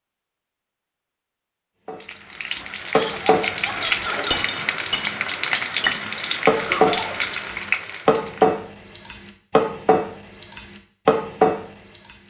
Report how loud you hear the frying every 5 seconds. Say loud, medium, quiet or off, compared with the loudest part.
loud, loud, off.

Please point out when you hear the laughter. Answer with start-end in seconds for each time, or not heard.
2.9-4.3, 6.5-7.2.